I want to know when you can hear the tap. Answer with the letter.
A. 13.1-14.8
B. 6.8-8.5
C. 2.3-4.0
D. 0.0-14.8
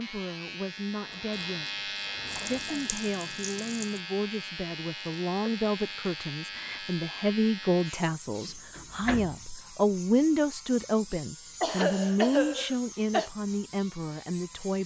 C.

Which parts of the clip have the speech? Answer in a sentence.
You can hear the speech from 0.0 to 14.8 s.